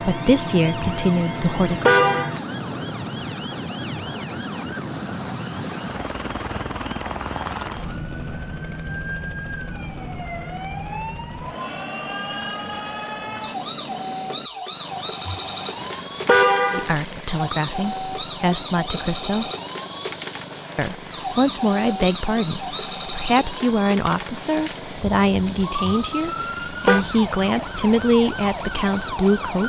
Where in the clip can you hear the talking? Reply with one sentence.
The talking can be heard from 0.0 to 1.9 s, from 16.7 to 19.5 s and from 20.8 to 29.6 s.